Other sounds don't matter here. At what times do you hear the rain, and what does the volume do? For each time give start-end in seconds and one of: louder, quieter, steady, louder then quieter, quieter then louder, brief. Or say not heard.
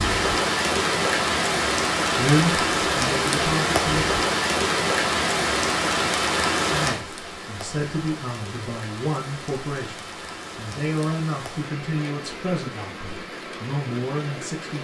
0.0-14.7 quieter.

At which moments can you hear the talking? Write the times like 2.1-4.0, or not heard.
2.1-4.0, 6.7-14.7.